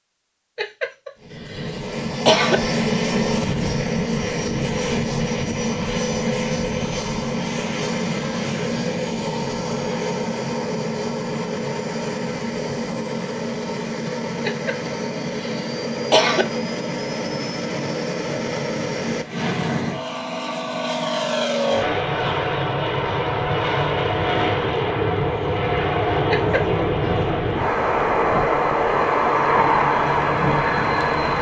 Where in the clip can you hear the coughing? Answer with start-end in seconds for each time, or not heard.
0.6-2.6, 14.4-16.4, 26.3-27.1.